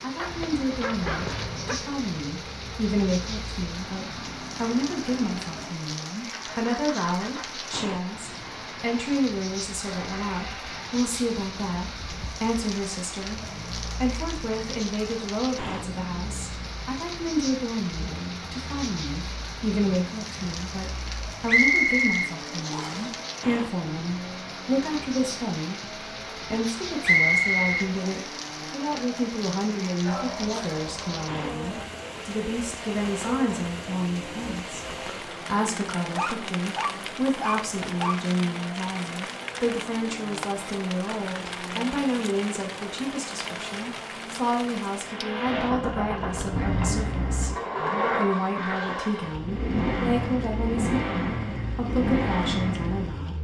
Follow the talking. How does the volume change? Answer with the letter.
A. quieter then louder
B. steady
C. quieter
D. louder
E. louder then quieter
B.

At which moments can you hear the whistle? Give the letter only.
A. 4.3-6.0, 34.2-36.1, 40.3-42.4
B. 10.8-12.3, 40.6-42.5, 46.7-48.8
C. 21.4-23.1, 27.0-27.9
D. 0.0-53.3
C.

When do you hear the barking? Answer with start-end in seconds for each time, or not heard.
0.1-1.8, 30.0-31.9, 36.1-38.1.